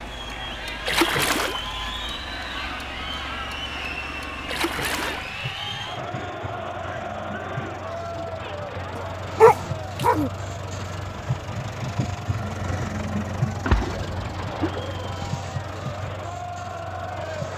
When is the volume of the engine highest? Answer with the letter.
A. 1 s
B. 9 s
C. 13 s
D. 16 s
C.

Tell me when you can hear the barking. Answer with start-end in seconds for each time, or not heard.
8.9-10.3.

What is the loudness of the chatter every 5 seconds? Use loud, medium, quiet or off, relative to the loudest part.
loud, loud, medium, loud.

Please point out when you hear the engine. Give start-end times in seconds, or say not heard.
0.0-17.5.